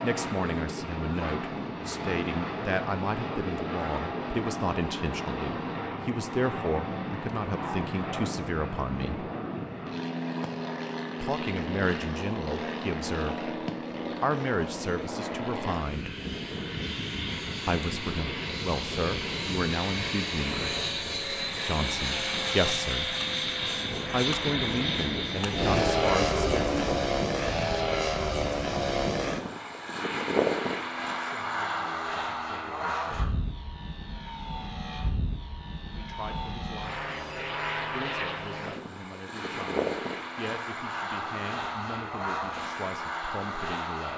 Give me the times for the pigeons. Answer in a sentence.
You can hear the pigeons from 25.6 to 27.1 s.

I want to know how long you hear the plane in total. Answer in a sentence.
You can hear the plane for 44 seconds altogether.